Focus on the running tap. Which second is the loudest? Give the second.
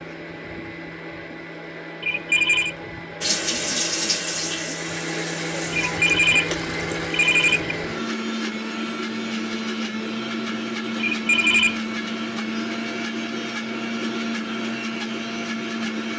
4 s.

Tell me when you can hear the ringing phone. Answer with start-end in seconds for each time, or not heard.
2.0-2.8, 5.7-7.8, 11.0-11.8.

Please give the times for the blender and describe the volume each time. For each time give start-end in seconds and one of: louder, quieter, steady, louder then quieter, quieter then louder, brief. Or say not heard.
0.0-16.1 louder.